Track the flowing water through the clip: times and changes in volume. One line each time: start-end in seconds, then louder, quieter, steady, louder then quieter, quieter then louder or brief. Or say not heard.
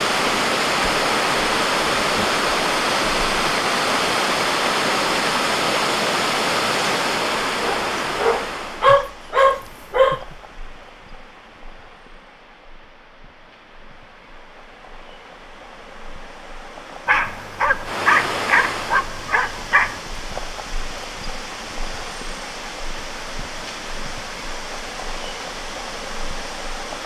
0.0-27.0 quieter then louder.